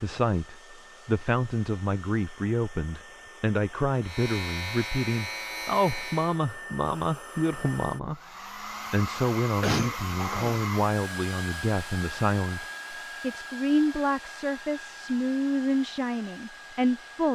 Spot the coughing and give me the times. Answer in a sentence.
The coughing can be heard from 9.6 to 10.6 s.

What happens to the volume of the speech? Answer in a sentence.
The volume of the speech stays about the same.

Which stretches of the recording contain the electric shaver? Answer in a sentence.
You can hear the electric shaver from 4.0 to 6.3 s.